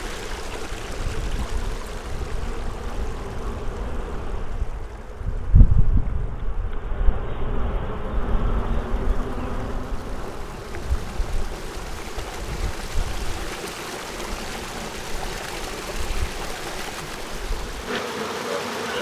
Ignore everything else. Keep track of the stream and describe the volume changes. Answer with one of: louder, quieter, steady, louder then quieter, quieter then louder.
quieter then louder.